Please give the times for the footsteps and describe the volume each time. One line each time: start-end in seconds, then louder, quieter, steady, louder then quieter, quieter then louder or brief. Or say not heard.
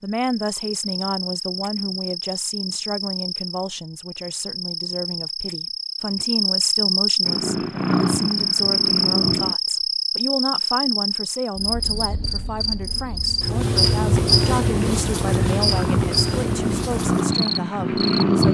not heard.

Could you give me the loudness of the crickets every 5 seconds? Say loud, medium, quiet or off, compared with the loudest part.
medium, loud, loud, loud.